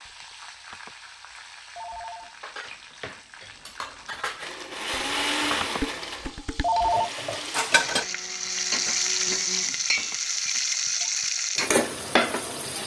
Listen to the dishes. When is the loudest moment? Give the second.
8 s.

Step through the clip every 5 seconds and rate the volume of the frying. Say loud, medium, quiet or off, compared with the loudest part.
quiet, loud, loud.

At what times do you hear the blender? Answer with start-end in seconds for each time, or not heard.
4.3-9.9.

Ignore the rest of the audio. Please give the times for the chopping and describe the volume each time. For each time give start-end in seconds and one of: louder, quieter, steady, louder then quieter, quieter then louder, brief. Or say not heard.
not heard.